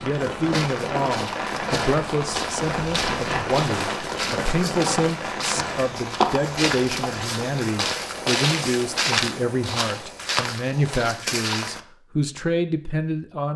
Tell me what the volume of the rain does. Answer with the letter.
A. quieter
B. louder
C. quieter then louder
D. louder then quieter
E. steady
A.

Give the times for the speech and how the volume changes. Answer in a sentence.
The speech can be heard from 0.0 to 13.5 s, at a steady volume.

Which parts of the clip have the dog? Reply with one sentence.
The dog can't be heard in this clip.